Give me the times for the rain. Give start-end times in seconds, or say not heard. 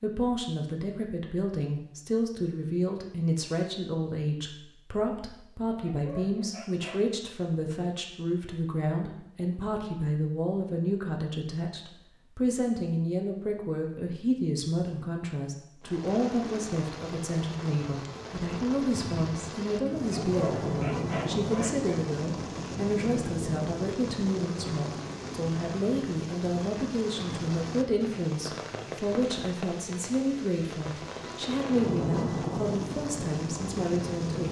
15.8-34.4.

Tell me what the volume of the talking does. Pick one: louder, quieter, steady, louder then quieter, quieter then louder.
steady.